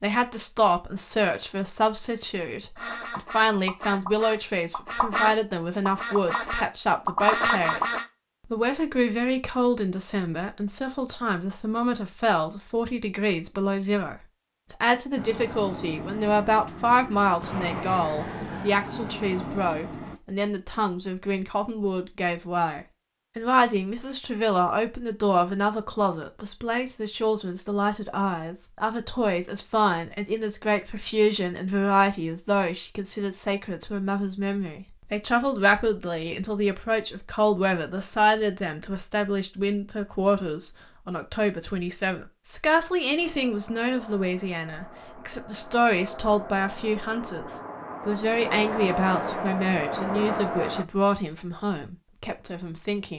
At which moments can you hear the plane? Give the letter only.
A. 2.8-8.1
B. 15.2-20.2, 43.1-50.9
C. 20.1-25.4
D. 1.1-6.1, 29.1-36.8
B.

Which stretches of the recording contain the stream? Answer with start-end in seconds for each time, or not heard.
not heard.